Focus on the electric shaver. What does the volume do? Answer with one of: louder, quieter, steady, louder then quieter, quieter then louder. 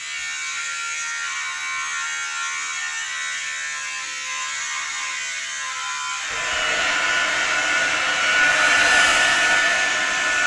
steady.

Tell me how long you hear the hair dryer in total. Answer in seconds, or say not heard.
4 s.